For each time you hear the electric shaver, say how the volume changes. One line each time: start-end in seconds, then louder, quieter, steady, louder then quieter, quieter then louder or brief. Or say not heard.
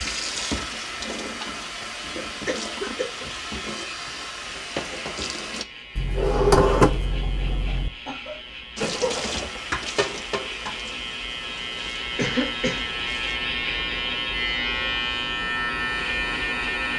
0.1-16.9 louder.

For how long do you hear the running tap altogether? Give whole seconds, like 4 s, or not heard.
10 s.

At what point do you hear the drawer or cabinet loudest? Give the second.
7 s.